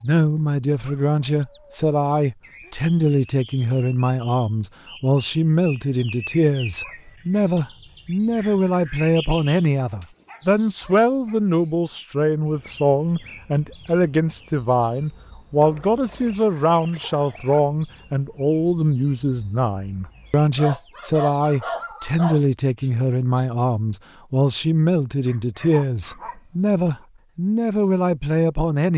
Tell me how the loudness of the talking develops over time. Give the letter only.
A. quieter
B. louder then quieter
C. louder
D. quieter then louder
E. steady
E.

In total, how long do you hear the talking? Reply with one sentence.
The talking can be heard for 29 seconds in total.